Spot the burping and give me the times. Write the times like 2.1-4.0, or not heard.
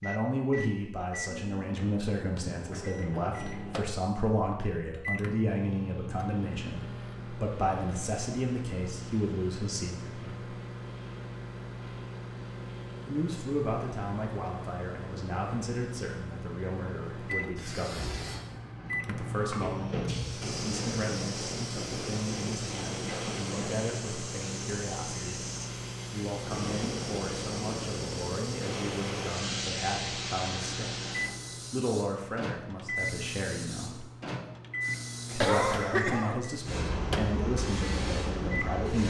not heard.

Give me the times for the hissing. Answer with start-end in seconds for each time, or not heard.
17.5-39.0.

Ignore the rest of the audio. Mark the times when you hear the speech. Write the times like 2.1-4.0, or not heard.
0.0-10.3, 13.1-18.2, 19.1-25.4, 26.1-31.1, 31.7-34.1, 35.2-39.0.